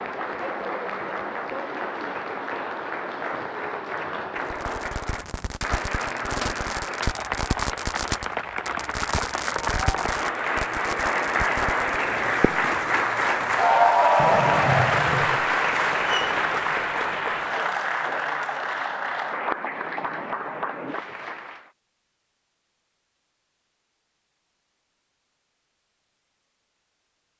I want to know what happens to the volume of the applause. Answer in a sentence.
The volume of the applause goes up, then down.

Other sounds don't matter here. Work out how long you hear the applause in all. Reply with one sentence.
You can hear the applause for 22 seconds altogether.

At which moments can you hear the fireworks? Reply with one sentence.
You can hear the fireworks from 4.3 to 12.8 s and from 14.2 to 16.4 s.